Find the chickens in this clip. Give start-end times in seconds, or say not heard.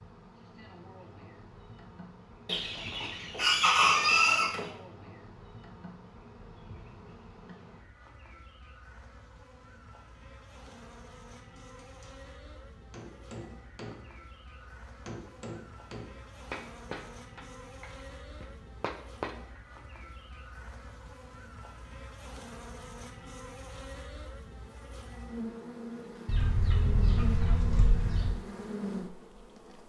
2.5-4.7, 26.2-28.3.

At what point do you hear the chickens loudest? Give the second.
4 s.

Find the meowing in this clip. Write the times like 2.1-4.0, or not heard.
not heard.